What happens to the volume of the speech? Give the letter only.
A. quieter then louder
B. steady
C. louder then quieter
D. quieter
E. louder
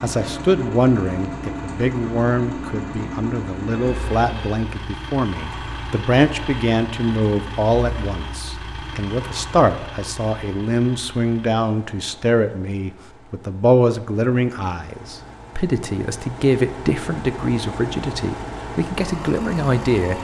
B.